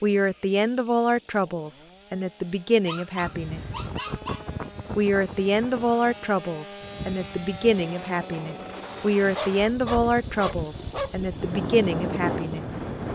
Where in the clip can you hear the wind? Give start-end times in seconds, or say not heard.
3.2-13.1.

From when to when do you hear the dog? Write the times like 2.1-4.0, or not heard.
2.9-4.5, 9.2-11.2.